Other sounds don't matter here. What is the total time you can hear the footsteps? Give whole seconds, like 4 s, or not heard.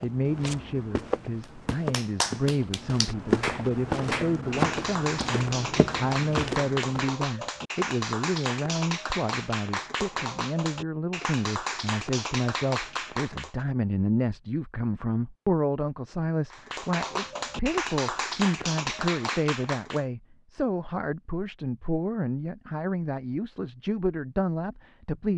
7 s.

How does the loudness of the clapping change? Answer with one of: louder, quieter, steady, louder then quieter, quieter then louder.
steady.